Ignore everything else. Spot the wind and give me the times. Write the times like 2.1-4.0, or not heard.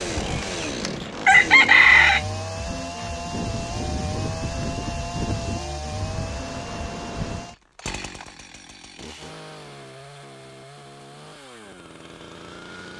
0.0-7.5.